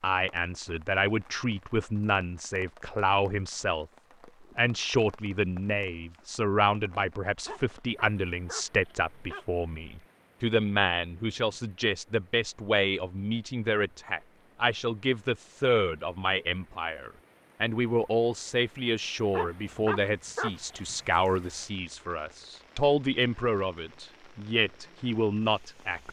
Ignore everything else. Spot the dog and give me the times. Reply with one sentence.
The dog can be heard from 7.5 to 9.4 s and from 19.3 to 20.9 s.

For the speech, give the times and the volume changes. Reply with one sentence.
The speech can be heard from 0.0 to 26.0 s, at a steady volume.